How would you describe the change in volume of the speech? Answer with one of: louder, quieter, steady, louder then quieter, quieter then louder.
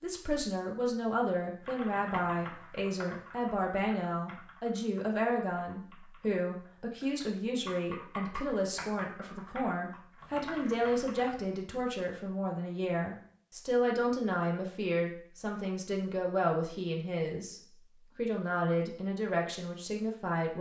steady.